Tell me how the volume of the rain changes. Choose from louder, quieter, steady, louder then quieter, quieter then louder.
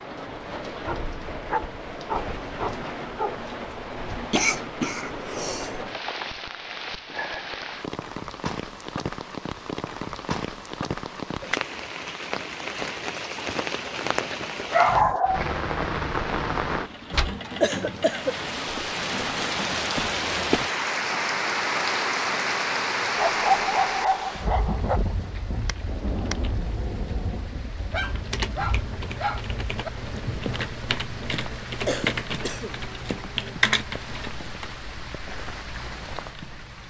louder then quieter.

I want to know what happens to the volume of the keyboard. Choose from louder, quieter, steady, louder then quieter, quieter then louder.
louder.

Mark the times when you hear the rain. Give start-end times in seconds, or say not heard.
0.0-36.8.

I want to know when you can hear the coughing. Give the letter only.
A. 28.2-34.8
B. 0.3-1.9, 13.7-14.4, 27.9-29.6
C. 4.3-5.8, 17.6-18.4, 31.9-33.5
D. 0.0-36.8
C.